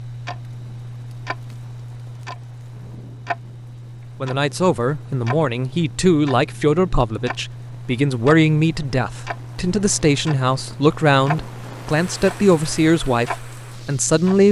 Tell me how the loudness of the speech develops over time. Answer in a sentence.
The volume of the speech stays about the same.